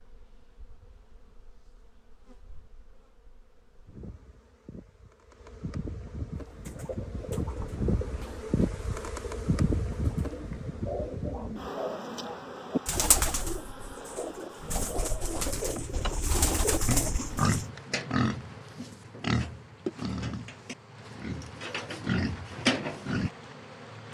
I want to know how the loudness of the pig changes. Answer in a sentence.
The loudness of the pig goes down, then up.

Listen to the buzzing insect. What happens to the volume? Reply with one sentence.
The loudness of the buzzing insect goes up, then down.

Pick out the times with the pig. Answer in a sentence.
The pig can be heard from 16.9 to 23.3 s.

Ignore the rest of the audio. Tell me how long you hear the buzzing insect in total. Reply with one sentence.
You can hear the buzzing insect for 24 seconds altogether.